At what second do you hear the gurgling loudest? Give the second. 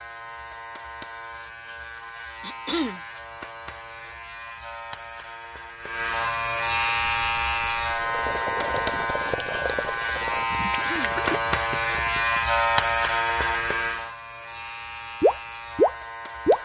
16 s.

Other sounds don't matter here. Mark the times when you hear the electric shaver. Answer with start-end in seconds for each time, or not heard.
0.0-16.6.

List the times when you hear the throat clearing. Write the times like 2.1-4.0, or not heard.
2.4-3.0, 10.7-11.2.